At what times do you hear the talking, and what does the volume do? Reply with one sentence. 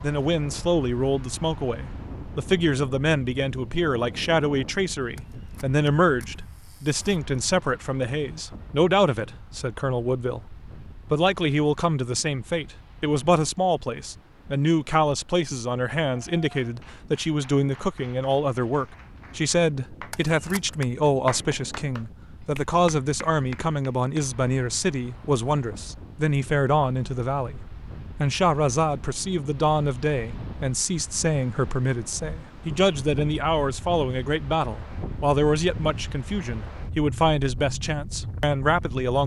You can hear the talking from 0.0 to 39.2 s, at a steady volume.